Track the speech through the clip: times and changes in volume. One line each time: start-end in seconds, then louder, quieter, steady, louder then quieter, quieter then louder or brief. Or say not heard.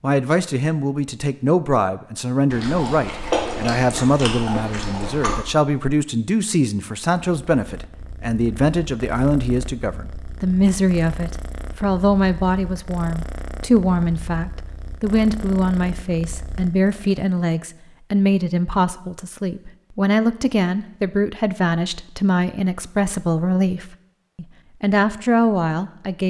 0.0-26.2 steady.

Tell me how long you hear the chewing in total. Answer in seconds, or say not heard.
3 s.